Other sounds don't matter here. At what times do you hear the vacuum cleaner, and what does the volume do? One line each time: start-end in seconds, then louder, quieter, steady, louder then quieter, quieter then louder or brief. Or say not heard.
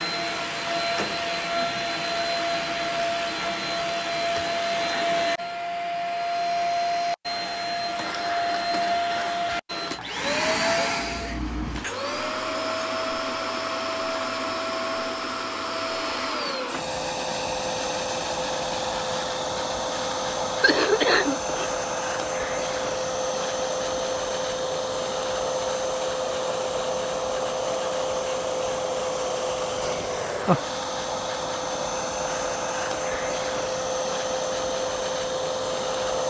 0.0-36.2 steady.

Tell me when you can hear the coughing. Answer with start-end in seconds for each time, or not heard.
20.6-21.7.